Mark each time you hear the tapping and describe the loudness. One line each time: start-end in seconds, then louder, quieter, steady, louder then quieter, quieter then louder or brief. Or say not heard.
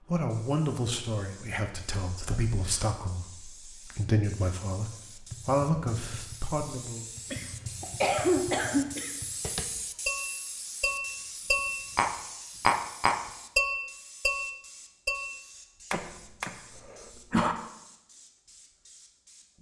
5.3-16.6 louder then quieter.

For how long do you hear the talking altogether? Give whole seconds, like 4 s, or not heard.
7 s.